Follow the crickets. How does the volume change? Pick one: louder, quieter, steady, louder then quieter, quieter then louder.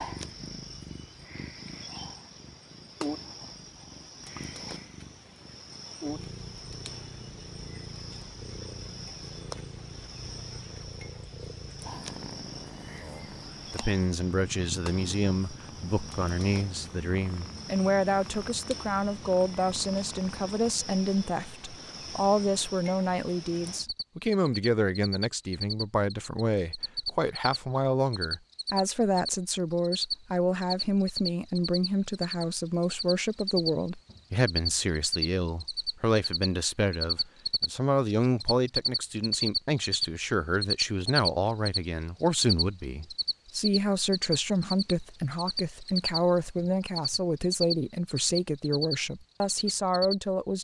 louder.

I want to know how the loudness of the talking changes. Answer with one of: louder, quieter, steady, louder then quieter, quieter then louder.
steady.